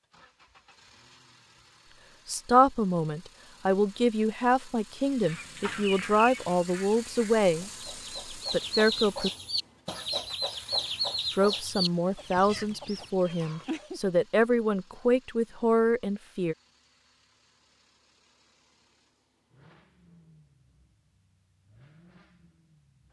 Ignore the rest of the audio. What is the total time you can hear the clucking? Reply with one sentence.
You can hear the clucking for 9 seconds altogether.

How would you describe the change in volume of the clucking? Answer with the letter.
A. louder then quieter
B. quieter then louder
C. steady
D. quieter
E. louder
A.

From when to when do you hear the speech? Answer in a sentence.
The speech can be heard from 2.2 to 7.7 s, from 8.3 to 9.3 s and from 11.3 to 16.6 s.